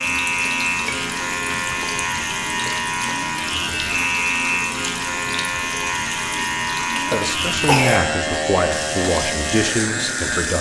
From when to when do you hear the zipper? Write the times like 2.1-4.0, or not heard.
not heard.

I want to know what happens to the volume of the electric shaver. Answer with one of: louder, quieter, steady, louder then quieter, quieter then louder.
steady.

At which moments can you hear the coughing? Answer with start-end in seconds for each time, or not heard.
7.1-8.1.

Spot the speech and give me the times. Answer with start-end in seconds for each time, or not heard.
7.0-10.5.